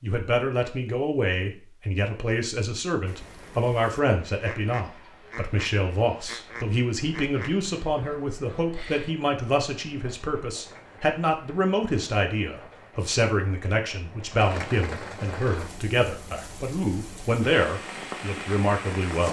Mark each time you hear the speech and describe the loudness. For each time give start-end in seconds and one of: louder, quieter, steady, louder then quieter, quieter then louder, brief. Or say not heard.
0.0-19.2 steady.